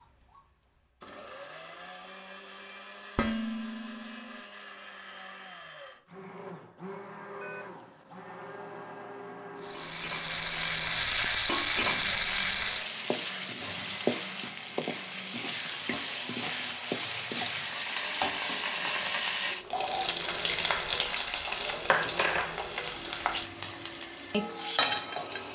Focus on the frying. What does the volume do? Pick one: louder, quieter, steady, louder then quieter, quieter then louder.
steady.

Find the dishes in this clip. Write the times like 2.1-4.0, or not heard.
3.1-4.4.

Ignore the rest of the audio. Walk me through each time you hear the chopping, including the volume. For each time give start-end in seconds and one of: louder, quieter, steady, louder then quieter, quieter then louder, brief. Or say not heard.
not heard.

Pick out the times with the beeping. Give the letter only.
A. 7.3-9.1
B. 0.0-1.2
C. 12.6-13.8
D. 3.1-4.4
A.